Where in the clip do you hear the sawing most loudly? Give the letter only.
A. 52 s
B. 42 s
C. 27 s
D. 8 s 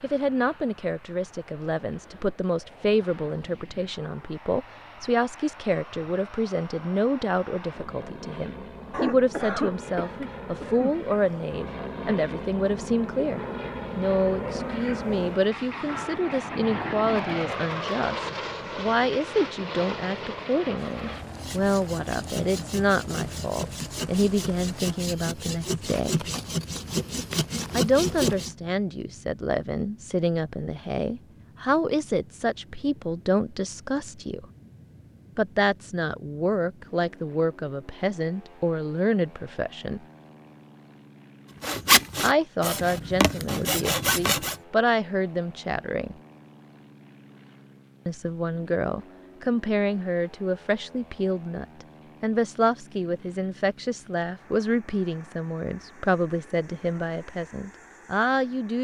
B.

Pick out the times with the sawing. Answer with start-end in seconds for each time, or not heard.
20.8-28.6, 41.6-44.5.